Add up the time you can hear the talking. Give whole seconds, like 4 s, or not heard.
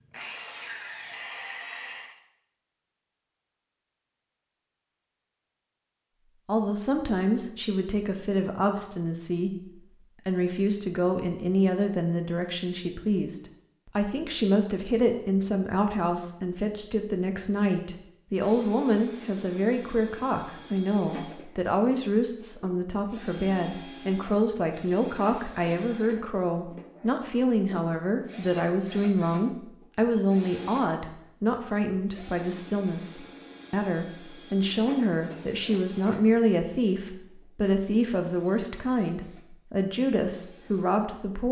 35 s.